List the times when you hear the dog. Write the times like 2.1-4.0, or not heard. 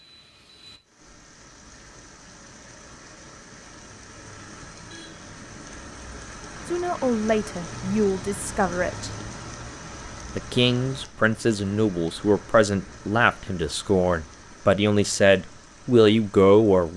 not heard.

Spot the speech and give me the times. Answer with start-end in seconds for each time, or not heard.
6.7-9.1, 10.3-16.9.